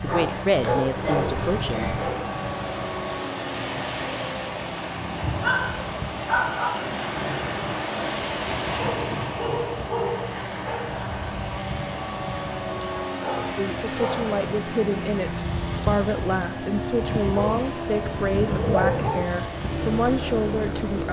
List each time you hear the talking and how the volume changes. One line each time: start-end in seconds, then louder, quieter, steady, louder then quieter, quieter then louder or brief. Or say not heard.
0.0-1.9 brief
13.6-21.0 steady.